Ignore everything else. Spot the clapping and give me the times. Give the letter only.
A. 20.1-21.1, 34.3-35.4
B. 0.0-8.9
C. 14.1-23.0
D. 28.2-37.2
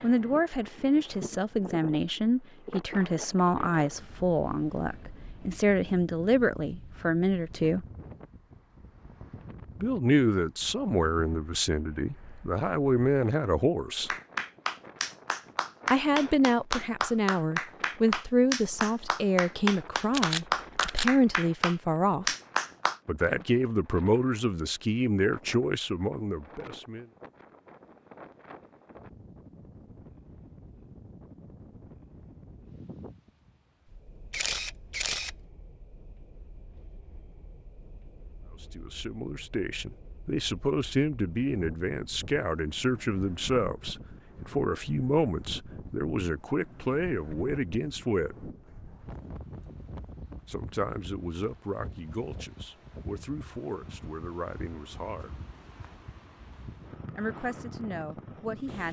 C.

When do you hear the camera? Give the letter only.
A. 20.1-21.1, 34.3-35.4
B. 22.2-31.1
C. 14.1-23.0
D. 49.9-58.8
A.